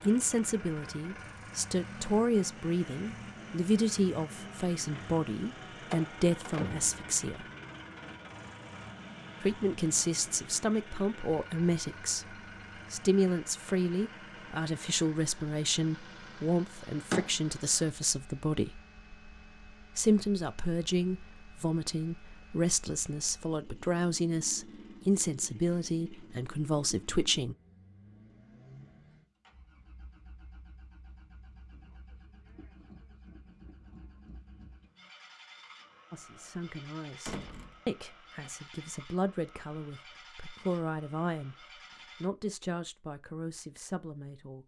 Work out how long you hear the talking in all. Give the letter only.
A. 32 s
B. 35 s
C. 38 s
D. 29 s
A.